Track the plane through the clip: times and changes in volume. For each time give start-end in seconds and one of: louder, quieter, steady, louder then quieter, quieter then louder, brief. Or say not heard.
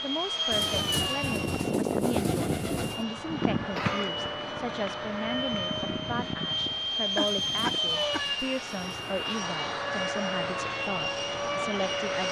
0.0-12.2 steady.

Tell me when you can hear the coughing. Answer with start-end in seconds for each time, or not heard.
3.8-4.2, 7.2-8.2.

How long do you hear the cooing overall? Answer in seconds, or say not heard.
5 s.